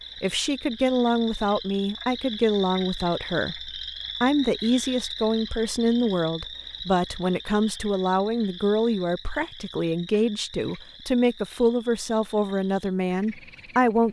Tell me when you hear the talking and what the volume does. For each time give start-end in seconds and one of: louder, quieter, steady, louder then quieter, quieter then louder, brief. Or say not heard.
0.2-14.0 steady.